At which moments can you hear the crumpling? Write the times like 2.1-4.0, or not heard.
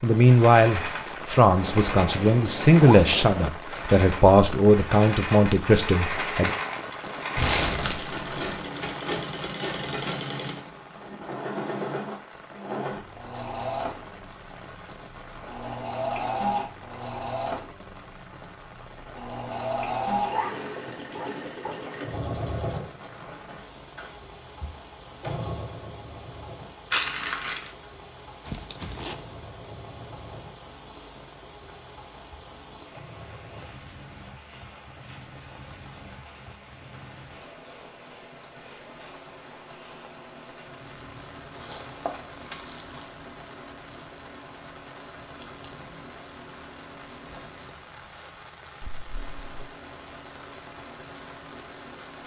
7.3-8.4, 26.9-27.7, 41.6-43.1.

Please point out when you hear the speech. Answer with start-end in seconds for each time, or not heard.
0.0-6.5.